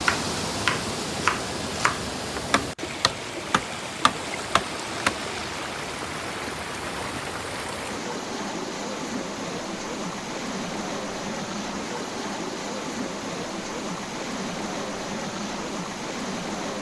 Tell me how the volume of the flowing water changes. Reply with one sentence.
The loudness of the flowing water stays about the same.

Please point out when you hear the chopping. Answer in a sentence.
You can hear the chopping from 0.0 to 5.2 s.